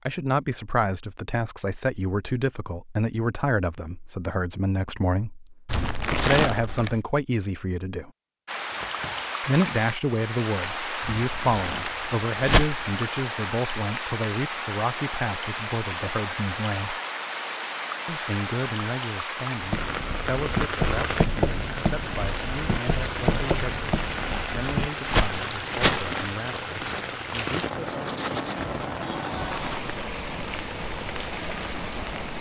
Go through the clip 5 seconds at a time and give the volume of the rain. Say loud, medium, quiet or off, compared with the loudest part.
off, loud, loud, loud, loud, loud, loud.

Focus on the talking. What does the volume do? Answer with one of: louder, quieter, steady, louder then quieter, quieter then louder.
quieter.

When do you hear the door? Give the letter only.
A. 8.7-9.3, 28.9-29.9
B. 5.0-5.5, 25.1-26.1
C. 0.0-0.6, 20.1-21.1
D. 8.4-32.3
A.